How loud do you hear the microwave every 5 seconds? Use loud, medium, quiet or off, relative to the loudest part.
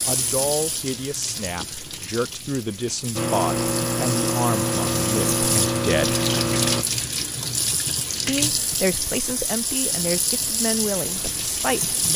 loud, loud, off.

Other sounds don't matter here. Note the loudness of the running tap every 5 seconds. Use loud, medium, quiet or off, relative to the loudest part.
medium, loud, loud.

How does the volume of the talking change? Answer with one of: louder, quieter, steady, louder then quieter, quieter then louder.
steady.